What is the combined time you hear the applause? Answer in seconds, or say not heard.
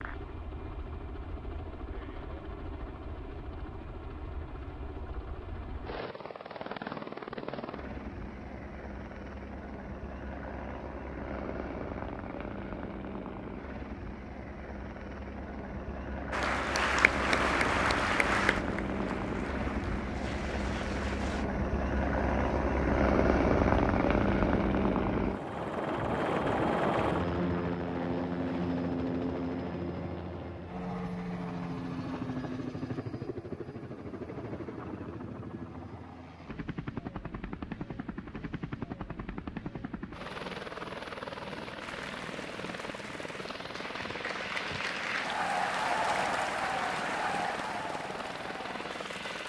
13 s.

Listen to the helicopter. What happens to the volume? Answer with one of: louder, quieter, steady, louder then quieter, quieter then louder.
louder then quieter.